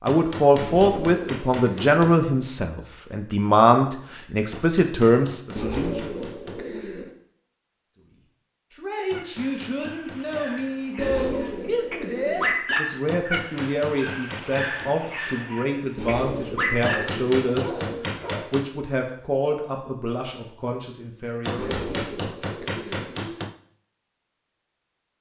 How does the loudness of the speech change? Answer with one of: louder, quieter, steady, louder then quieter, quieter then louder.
quieter.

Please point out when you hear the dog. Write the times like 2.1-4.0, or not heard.
9.1-18.6.